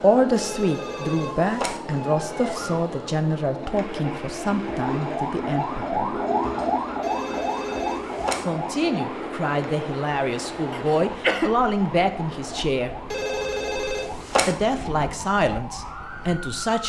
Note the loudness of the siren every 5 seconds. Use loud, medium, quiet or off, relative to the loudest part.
medium, loud, medium, medium.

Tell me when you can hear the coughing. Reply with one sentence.
You can hear the coughing from 10.7 to 11.5 s.